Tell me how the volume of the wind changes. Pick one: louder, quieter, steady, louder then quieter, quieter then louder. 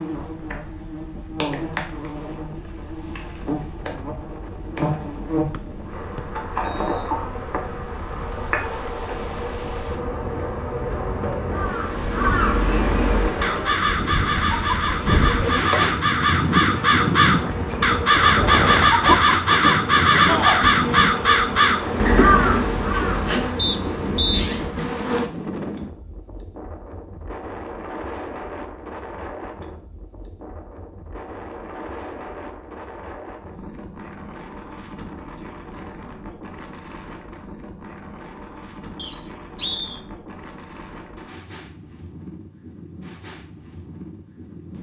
louder then quieter.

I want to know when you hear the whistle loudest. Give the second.
24 s.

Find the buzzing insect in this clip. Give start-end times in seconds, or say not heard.
0.0-25.3.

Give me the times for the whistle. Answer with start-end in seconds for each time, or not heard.
5.5-7.0, 23.6-24.4, 39.0-40.0.